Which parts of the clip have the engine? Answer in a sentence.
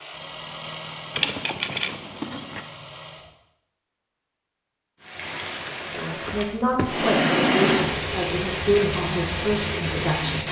The engine can be heard from 0.0 to 3.4 s.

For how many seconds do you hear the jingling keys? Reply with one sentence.
You can hear the jingling keys for 2 seconds altogether.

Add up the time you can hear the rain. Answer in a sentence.
The rain can be heard for 5 seconds in total.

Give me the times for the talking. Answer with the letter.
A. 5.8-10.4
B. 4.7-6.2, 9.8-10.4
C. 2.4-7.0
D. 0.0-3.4
A.